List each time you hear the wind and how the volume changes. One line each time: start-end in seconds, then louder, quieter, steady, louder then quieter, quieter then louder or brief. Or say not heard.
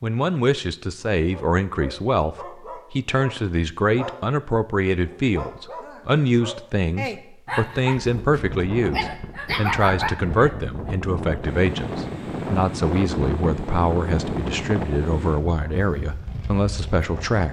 8.0-17.4 louder then quieter.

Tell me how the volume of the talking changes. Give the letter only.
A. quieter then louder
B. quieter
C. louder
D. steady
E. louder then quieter
D.